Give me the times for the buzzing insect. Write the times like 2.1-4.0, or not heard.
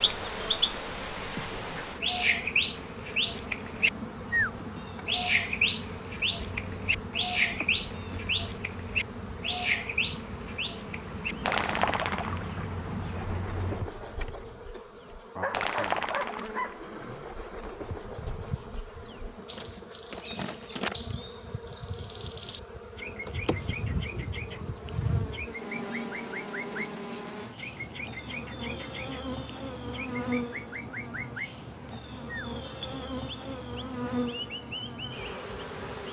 0.0-36.0.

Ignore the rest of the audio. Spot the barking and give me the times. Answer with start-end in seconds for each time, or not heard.
15.3-16.8.